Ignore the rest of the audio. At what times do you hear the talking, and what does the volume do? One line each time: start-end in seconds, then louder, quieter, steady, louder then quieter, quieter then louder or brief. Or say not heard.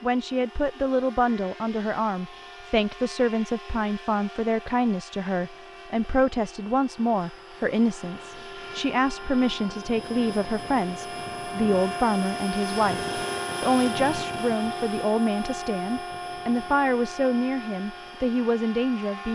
0.0-19.3 steady.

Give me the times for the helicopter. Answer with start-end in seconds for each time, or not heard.
0.0-19.3.